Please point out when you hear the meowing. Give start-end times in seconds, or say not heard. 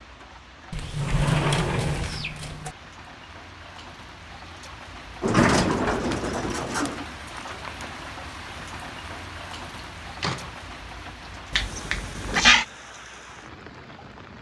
11.5-12.7.